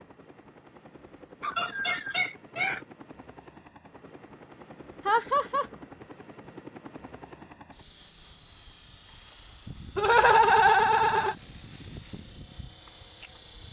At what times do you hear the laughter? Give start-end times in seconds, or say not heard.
1.4-2.8, 5.0-5.7, 9.9-11.3.